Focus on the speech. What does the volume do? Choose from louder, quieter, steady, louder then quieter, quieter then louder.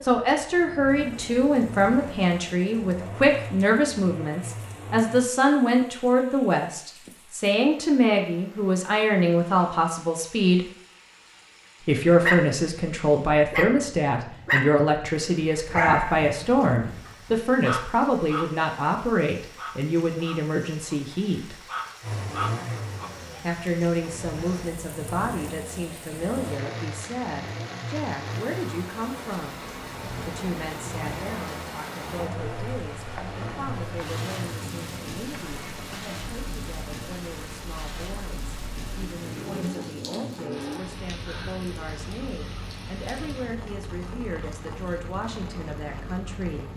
quieter.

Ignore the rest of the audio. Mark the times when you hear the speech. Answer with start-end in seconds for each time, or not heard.
0.0-10.7, 11.8-21.6, 23.4-29.6, 30.2-46.7.